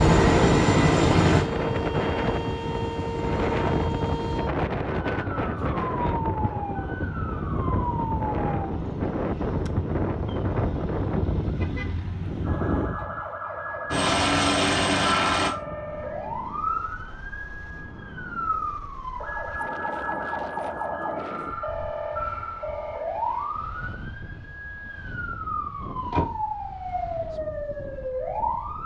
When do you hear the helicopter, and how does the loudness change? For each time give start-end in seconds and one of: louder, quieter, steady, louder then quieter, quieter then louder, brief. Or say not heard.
0.0-4.4 quieter
13.9-15.5 brief.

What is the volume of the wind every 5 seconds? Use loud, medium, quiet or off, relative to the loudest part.
loud, loud, loud, quiet, quiet, quiet.